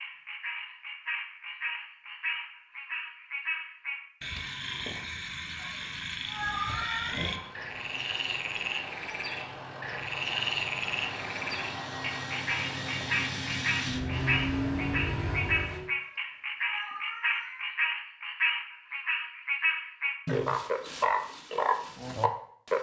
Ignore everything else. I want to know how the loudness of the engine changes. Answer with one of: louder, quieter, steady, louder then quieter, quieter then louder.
louder.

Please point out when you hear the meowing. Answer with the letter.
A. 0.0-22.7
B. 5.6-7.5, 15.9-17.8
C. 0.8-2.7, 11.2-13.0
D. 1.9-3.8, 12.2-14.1
B.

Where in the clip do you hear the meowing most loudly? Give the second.
7 s.